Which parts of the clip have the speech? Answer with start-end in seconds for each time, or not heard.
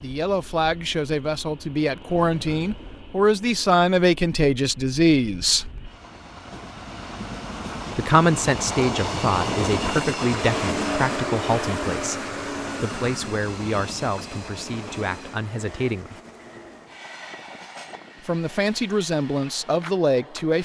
0.0-5.7, 8.0-16.2, 18.2-20.6.